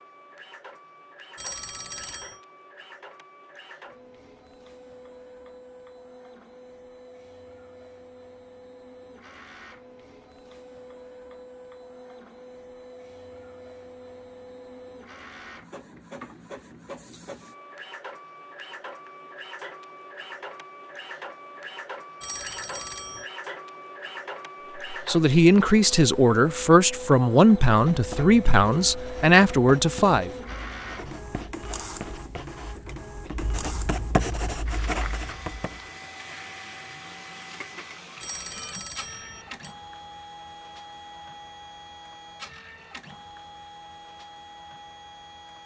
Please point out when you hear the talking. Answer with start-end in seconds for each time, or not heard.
24.9-30.3.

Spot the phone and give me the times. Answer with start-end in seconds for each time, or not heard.
1.4-2.4, 22.2-23.3, 38.2-39.8.